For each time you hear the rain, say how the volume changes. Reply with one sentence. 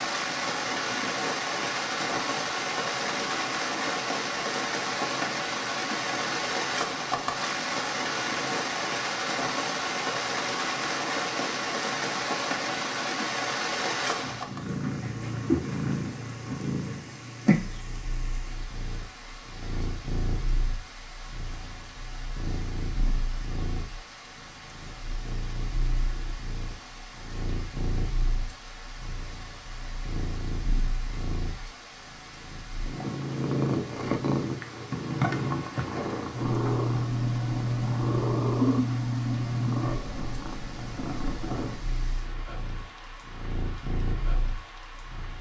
The rain can be heard from 0.0 to 45.3 s, getting quieter.